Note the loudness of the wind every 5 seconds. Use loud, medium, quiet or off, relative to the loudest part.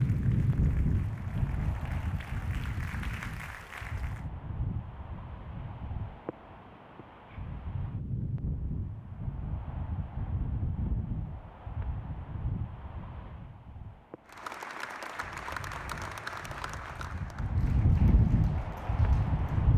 loud, medium, medium, loud.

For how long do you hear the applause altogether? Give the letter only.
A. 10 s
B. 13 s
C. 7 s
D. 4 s
A.